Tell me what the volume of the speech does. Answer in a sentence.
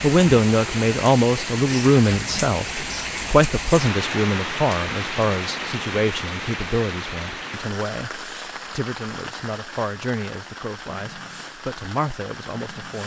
The loudness of the speech goes down.